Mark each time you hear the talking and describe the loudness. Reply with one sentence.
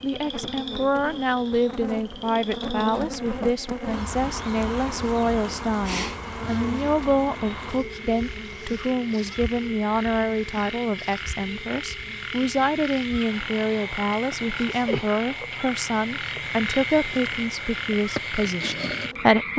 The talking can be heard from 0.0 to 19.5 s, at a steady volume.